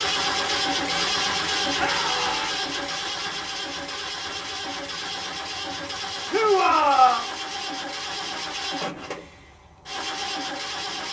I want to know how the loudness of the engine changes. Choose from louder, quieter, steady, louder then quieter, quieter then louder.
quieter.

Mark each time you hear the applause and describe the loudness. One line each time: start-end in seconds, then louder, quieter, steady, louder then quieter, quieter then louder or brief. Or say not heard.
not heard.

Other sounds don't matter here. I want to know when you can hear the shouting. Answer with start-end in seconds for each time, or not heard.
1.8-2.5, 6.3-7.2.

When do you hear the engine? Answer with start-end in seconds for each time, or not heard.
0.0-11.0.